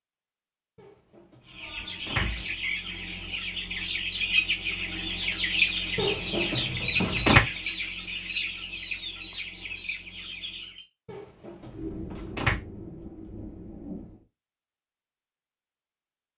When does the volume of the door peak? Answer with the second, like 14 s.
7 s.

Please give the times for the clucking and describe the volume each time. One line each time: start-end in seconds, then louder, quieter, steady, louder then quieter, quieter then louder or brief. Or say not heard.
1.4-10.8 louder then quieter.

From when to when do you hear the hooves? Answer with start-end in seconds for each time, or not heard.
not heard.